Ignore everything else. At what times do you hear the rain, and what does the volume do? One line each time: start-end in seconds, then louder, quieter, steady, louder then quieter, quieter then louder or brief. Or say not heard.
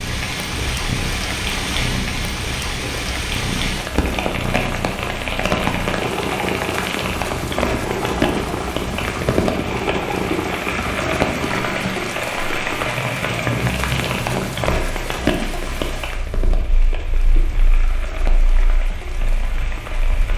0.0-20.3 quieter.